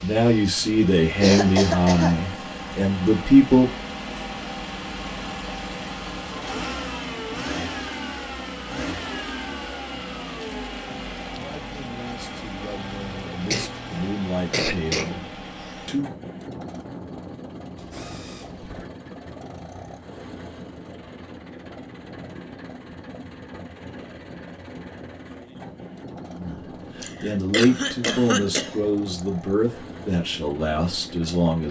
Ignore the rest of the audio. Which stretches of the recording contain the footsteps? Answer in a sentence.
You can't hear the footsteps here.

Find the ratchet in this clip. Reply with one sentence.
You can hear the ratchet from 17.8 to 18.9 s.